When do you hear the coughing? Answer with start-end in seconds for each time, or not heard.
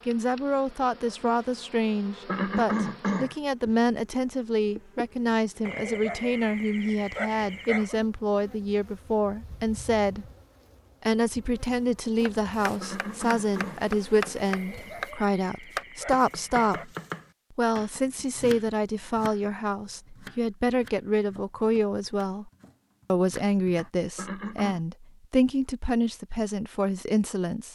2.2-3.4, 12.8-13.8, 24.1-24.8.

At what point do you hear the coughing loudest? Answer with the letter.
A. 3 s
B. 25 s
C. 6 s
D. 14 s
A.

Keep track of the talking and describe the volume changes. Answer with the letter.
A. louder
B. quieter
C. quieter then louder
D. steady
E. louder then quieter
D.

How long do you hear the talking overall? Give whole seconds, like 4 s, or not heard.
26 s.